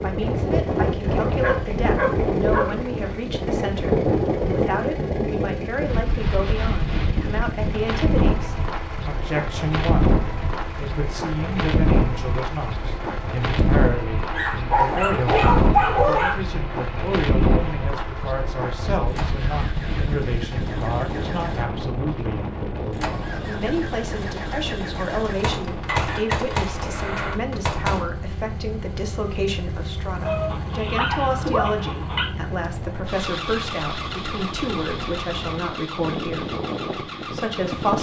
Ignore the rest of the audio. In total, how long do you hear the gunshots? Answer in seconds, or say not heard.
3 s.